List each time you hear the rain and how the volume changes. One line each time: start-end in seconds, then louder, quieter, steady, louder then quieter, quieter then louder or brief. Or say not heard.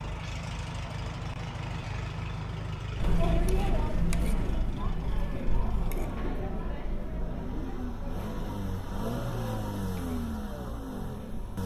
not heard.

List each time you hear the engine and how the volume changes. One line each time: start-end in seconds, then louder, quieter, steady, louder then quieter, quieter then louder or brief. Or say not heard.
0.0-11.6 quieter then louder.